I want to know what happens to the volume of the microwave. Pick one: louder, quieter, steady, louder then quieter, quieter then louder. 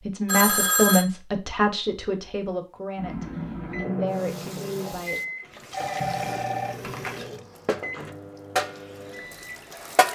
quieter.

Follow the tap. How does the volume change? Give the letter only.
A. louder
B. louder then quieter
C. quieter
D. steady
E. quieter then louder
B.